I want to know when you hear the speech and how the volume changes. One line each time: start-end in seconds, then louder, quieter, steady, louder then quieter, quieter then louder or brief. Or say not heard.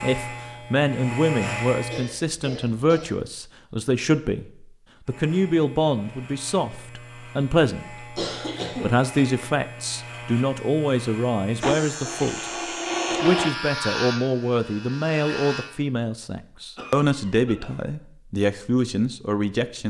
0.0-12.4 steady
13.2-19.8 steady.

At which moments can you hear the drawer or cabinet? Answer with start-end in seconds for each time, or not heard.
not heard.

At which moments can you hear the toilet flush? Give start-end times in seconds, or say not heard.
11.6-13.6.